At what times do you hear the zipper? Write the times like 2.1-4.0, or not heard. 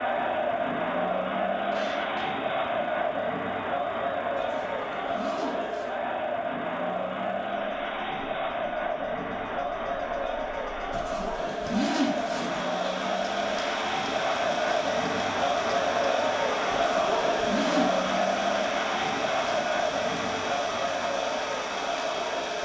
4.3-6.0, 10.9-12.7, 16.6-18.1.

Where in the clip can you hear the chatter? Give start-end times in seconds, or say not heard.
0.0-22.6.